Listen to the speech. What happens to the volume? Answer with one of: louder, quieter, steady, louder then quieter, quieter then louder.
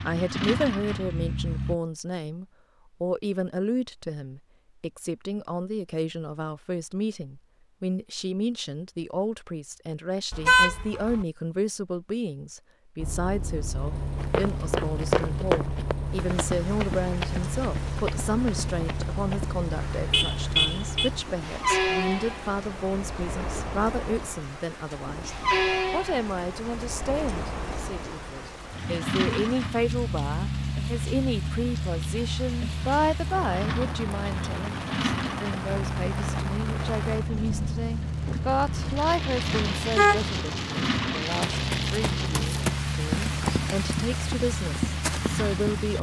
steady.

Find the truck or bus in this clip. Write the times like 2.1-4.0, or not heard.
0.0-1.8, 12.9-45.9.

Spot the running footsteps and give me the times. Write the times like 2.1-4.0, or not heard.
14.2-19.5, 41.2-45.7.